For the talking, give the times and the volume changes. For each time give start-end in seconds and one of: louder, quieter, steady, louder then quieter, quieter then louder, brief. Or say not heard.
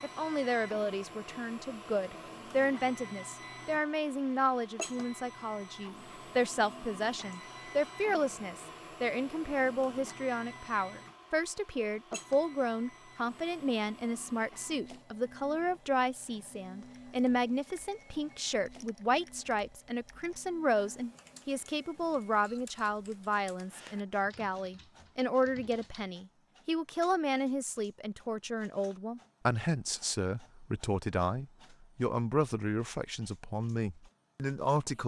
0.0-35.0 steady.